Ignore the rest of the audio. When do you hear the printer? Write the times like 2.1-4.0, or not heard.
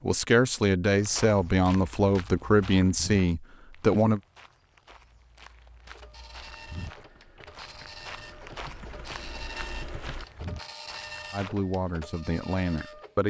5.8-13.2.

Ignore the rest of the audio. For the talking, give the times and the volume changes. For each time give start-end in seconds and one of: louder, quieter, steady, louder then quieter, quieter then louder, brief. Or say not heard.
0.0-4.2 steady
11.3-13.2 brief.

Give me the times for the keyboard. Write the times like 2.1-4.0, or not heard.
6.3-10.2.